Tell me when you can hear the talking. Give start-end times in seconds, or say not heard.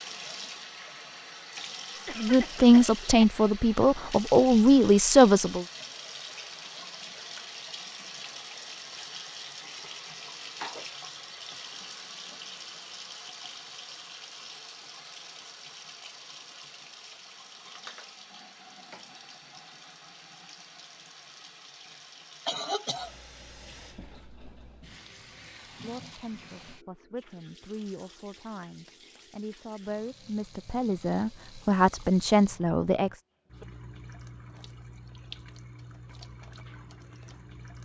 2.1-5.7, 25.8-33.2.